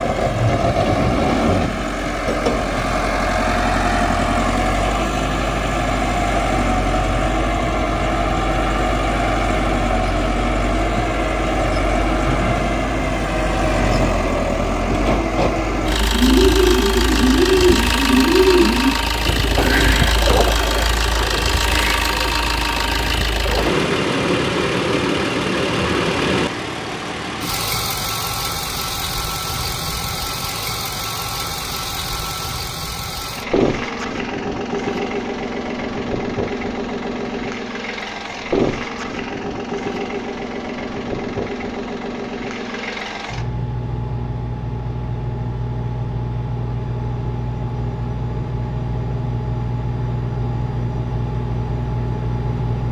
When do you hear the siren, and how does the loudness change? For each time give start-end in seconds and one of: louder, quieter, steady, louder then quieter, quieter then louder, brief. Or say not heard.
not heard.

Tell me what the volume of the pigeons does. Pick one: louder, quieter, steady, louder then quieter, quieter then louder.
quieter.